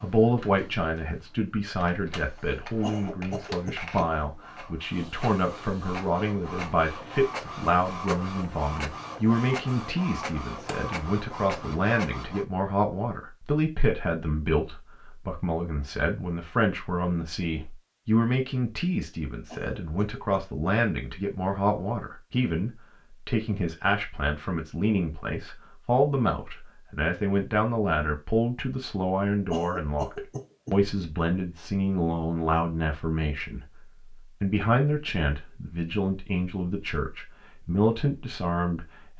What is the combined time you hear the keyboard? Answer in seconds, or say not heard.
not heard.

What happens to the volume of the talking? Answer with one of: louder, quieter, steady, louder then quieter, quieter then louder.
steady.